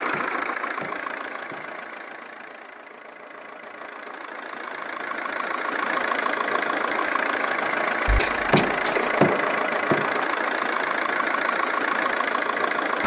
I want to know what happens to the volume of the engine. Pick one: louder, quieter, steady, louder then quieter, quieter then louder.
louder.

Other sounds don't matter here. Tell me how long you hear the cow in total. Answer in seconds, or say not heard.
not heard.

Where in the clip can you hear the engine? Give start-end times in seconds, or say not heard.
0.0-13.0.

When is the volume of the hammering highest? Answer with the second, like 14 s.
9 s.